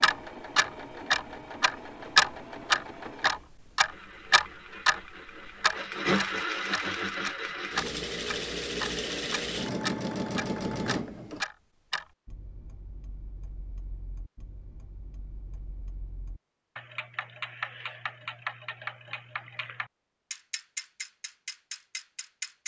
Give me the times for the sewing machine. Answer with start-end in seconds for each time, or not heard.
0.0-11.4.